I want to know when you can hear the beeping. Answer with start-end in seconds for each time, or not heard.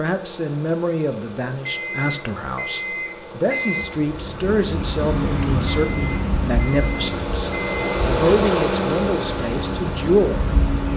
1.6-3.9, 5.7-8.1.